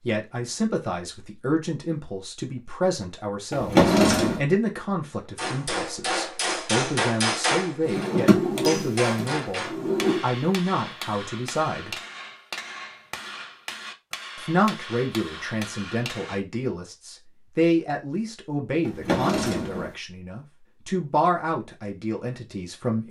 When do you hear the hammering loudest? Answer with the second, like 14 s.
7 s.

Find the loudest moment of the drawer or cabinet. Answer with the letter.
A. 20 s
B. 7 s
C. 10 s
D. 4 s
D.